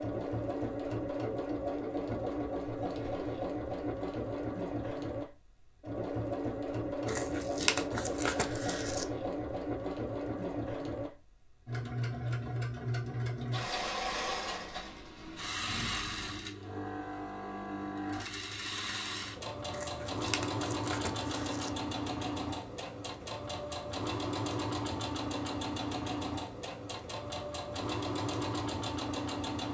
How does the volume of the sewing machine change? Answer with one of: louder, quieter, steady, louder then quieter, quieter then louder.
steady.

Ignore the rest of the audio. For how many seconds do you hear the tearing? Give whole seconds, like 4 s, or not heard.
4 s.